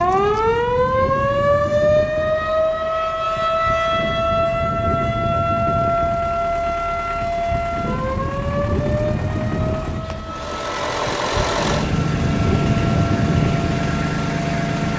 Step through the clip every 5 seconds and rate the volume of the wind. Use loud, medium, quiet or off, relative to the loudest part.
medium, loud, loud.